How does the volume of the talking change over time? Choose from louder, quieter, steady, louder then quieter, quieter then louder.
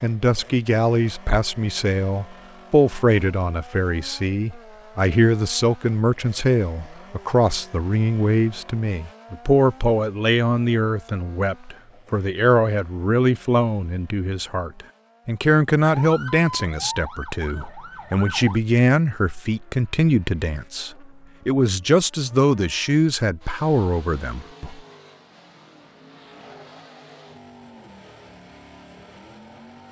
steady.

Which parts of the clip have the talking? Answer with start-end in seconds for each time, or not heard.
0.0-24.8.